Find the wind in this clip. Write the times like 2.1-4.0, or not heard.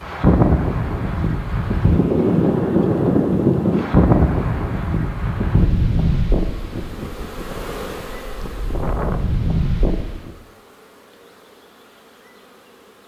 0.0-10.3.